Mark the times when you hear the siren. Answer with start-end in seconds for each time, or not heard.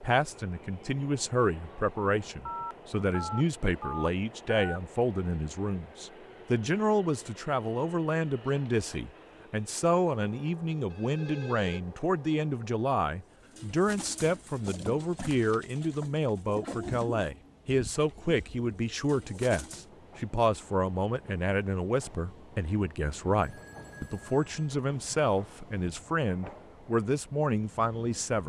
not heard.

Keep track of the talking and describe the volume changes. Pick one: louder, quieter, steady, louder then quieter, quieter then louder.
steady.